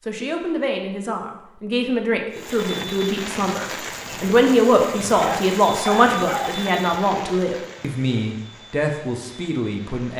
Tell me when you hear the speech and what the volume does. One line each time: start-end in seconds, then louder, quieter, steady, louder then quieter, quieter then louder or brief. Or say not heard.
0.1-10.1 louder then quieter.